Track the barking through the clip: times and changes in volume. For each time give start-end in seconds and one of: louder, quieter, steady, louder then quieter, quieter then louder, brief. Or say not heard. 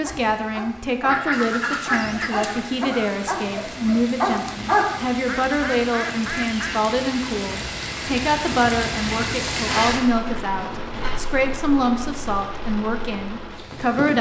0.0-4.9 louder.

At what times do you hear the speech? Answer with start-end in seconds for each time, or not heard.
0.0-14.1.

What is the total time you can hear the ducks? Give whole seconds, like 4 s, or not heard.
5 s.